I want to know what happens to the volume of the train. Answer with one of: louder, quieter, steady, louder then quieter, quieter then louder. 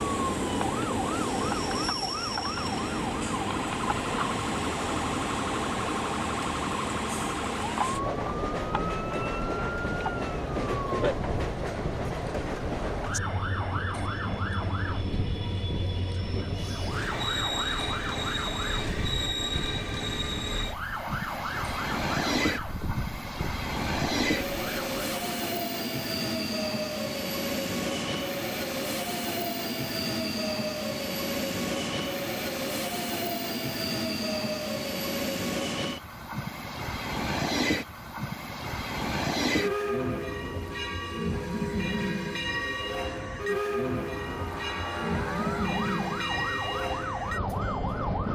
steady.